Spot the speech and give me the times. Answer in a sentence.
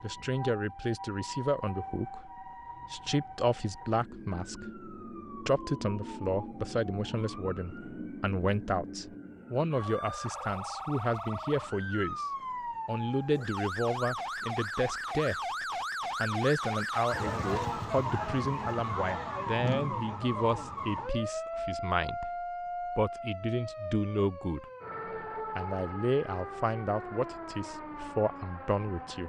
You can hear the speech from 0.0 to 2.3 s, from 2.9 to 12.2 s, from 12.8 to 15.3 s, from 16.1 to 24.6 s and from 25.6 to 29.2 s.